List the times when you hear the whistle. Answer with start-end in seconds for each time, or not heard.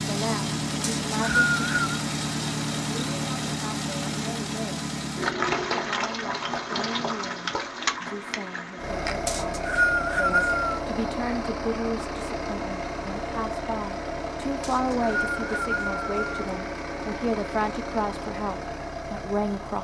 0.8-2.0, 9.2-10.8, 14.6-16.2.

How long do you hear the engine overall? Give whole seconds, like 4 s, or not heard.
20 s.